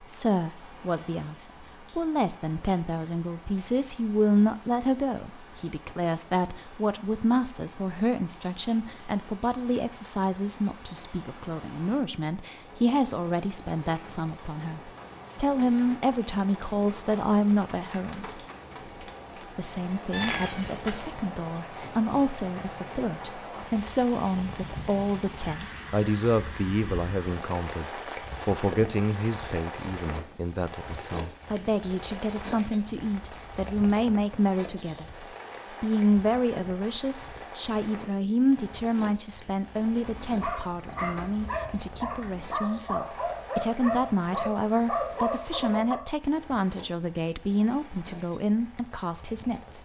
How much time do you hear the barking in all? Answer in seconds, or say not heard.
6 s.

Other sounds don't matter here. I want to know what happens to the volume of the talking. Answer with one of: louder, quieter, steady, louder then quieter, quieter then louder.
steady.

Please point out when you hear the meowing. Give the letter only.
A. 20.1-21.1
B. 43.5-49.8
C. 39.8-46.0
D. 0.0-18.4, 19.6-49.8
A.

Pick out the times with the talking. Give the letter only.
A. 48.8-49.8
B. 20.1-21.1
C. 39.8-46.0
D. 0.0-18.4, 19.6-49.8
D.